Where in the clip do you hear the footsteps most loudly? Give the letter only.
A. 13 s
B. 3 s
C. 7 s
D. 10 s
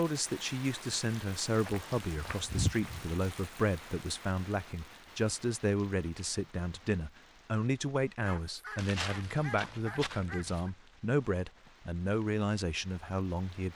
B.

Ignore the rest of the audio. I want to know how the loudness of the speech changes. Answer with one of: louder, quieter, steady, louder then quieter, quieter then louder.
steady.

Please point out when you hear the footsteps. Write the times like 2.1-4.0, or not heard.
1.6-3.0, 8.8-11.7.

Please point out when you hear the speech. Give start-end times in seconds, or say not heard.
0.0-13.7.